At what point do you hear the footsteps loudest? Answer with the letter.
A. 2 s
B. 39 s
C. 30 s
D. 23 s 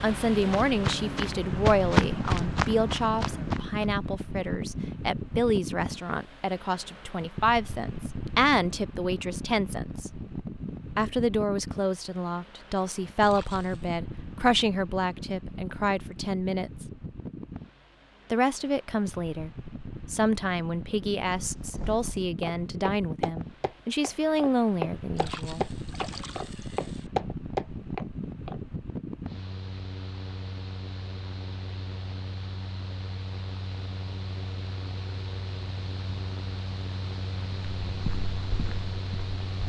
A.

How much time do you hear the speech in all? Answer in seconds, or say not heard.
23 s.